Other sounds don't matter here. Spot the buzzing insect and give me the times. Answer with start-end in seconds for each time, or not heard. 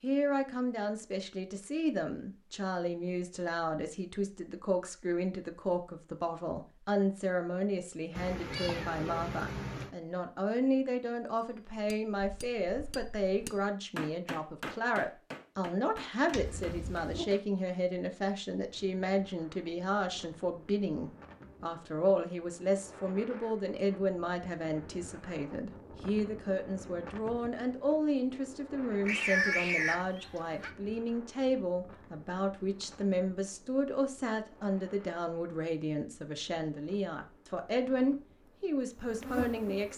38.5-39.9.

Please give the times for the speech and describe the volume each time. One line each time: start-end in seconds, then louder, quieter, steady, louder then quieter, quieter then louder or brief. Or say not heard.
0.0-39.9 steady.